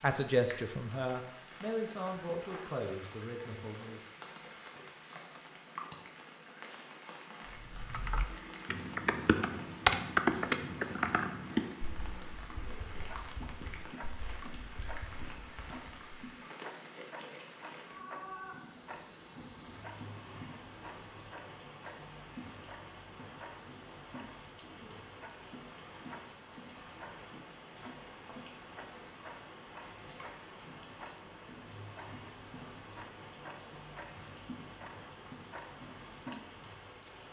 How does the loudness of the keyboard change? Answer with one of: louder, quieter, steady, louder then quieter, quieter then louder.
louder then quieter.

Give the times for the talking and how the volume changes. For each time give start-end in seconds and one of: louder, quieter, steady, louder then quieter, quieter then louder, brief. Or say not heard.
0.0-4.0 quieter.